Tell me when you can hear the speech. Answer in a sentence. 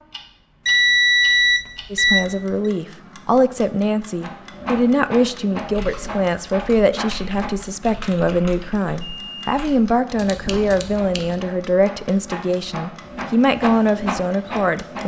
You can hear the speech from 1.9 to 15.0 s.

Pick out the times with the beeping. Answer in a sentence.
The beeping can be heard from 0.7 to 2.7 s and from 9.1 to 9.6 s.